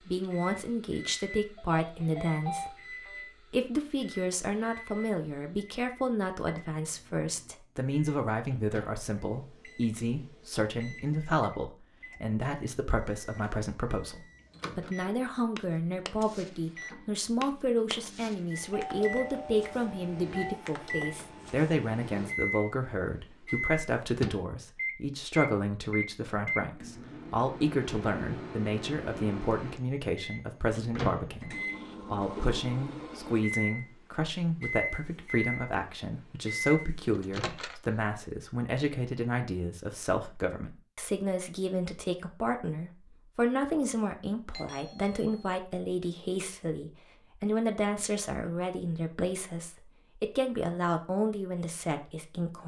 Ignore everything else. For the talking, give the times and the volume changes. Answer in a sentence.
You can hear the talking from 0.1 to 52.6 s, at a steady volume.